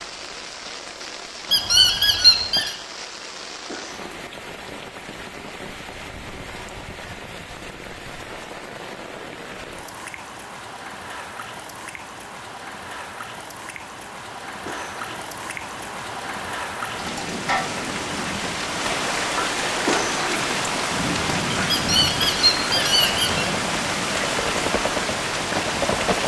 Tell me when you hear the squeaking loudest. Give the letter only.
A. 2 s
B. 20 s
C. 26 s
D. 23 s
A.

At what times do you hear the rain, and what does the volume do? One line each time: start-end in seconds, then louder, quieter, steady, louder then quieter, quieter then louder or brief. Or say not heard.
0.0-26.2 louder.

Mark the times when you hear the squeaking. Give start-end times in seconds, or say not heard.
1.5-2.8, 21.7-23.5.